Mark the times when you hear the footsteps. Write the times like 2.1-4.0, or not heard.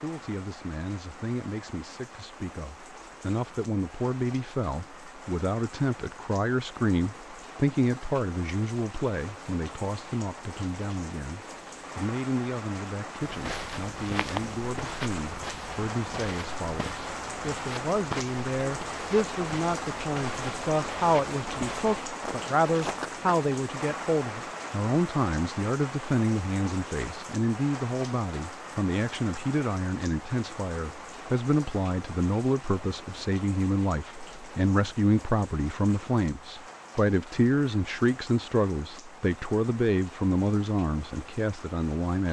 13.2-23.3.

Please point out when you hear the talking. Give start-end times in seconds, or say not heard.
0.0-42.2.